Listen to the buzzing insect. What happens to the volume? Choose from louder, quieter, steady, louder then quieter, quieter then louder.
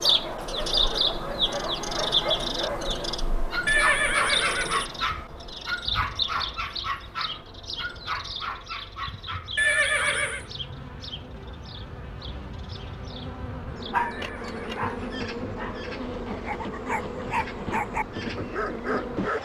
louder.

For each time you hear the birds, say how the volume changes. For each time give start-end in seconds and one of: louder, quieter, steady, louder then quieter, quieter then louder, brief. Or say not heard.
0.0-19.3 quieter.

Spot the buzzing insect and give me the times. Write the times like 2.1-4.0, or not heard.
5.0-19.3.